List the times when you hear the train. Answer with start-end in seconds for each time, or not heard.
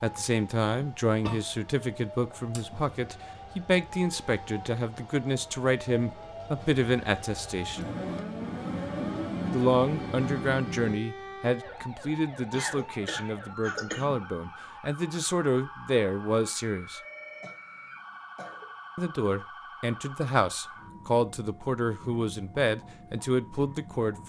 7.8-10.9.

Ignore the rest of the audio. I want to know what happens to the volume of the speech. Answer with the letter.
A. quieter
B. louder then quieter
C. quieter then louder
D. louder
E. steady
E.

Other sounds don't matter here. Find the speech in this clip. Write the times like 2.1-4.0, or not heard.
0.0-7.9, 9.5-17.0, 18.9-24.1.